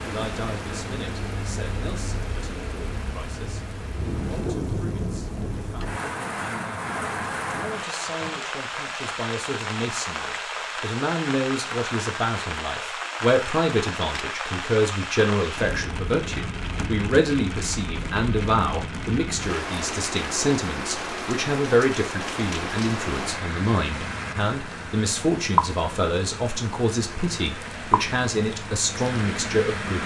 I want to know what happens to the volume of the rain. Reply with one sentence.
The volume of the rain stays about the same.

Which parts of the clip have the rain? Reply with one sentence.
You can hear the rain from 0.0 to 30.0 s.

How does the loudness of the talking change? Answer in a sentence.
The loudness of the talking goes up.